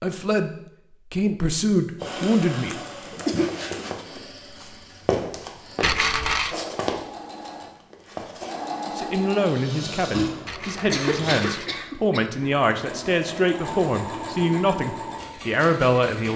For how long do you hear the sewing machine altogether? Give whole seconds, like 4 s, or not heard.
14 s.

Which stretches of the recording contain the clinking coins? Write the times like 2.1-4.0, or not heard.
5.8-6.5, 10.4-11.8.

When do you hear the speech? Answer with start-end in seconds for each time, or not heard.
0.0-0.5, 1.1-3.2, 8.8-16.3.